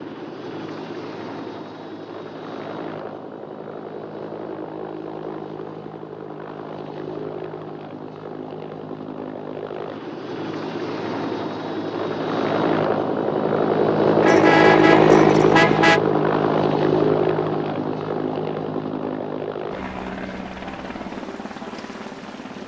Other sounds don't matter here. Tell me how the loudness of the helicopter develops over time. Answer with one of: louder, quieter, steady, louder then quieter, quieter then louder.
louder then quieter.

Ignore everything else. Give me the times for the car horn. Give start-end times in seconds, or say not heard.
14.2-16.0.